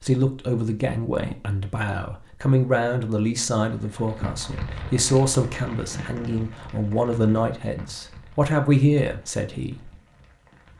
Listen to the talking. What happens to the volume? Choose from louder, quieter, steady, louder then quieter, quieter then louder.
louder.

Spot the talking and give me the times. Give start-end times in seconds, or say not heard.
0.0-9.9.